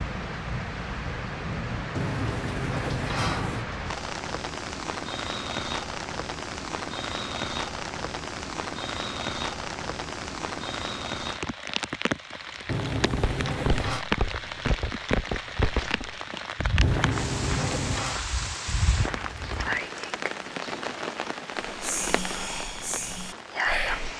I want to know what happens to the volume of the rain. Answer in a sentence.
The volume of the rain stays about the same.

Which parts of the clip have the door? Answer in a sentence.
The door can be heard from 1.9 to 3.6 s, from 12.7 to 14.1 s and from 16.8 to 18.2 s.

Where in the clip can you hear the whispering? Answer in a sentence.
You can hear the whispering from 21.6 to 24.1 s.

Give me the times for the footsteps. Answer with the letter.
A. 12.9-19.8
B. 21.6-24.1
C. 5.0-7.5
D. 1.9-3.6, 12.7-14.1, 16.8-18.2
A.